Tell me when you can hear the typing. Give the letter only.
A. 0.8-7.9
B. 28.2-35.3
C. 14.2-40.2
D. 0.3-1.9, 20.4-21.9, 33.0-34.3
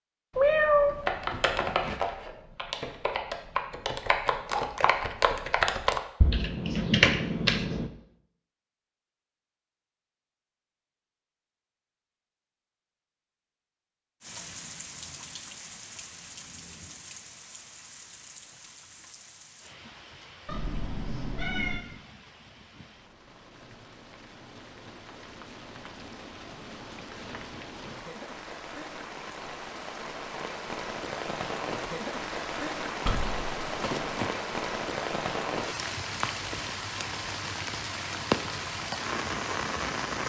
A.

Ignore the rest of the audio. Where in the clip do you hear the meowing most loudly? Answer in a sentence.
The volume of the meowing peaks at 1 second.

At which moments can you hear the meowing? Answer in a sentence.
The meowing can be heard from 0.3 to 1.9 s, from 20.4 to 21.9 s and from 33.0 to 34.3 s.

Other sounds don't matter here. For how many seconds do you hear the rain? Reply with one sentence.
You can hear the rain for 26 seconds altogether.